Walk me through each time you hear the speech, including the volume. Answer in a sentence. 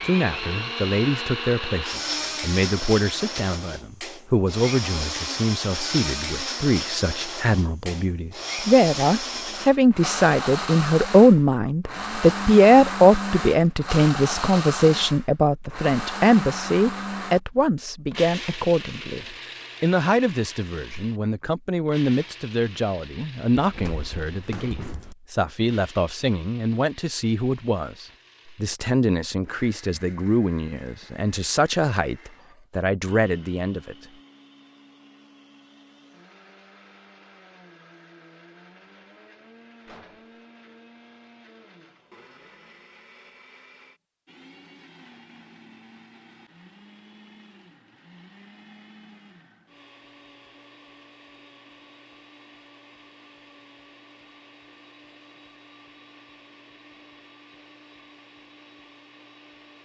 You can hear the speech from 0.0 to 34.0 s, getting louder then quieter.